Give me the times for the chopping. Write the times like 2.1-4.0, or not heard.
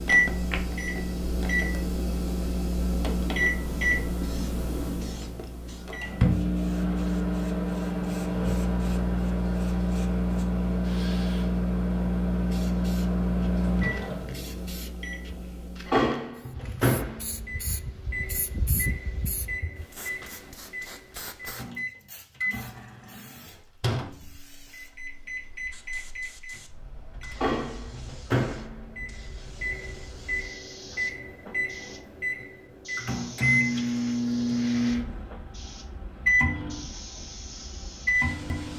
not heard.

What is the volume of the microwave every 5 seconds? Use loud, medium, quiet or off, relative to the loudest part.
loud, loud, loud, loud, medium, medium, loud, loud.